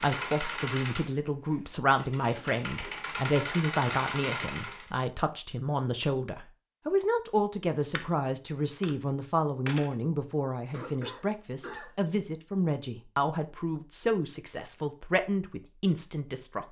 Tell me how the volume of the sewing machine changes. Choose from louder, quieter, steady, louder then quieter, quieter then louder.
quieter then louder.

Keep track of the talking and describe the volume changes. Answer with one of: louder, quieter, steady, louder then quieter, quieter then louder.
steady.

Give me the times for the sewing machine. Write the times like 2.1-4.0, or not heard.
0.0-4.9.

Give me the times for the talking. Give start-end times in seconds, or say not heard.
0.0-16.6.